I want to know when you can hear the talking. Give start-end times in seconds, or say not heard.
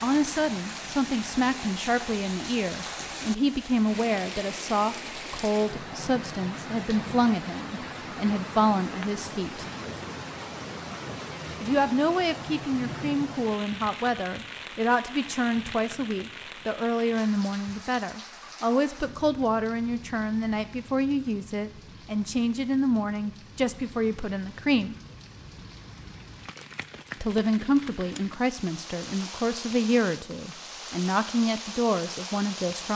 0.0-9.7, 11.6-24.9, 27.2-32.9.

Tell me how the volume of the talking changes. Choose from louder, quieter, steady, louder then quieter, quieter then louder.
steady.